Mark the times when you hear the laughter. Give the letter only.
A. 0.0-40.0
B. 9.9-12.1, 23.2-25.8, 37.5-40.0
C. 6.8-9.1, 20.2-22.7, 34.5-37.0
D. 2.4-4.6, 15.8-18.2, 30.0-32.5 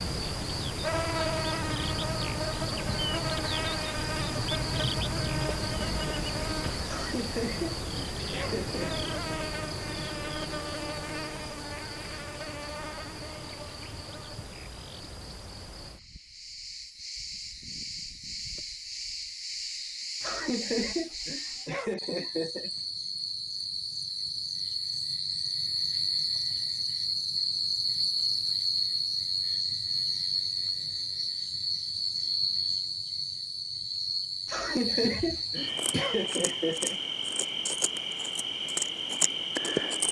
C.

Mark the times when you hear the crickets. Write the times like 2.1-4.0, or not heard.
0.0-40.0.